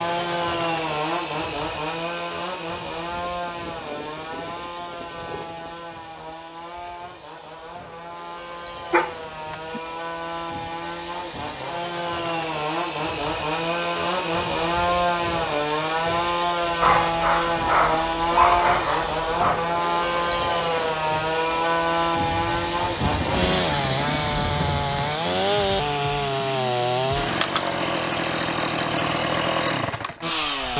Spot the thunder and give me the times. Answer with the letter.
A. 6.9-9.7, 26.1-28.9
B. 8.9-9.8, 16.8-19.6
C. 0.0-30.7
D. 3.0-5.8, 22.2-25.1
D.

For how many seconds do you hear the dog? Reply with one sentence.
The dog can be heard for 4 seconds in total.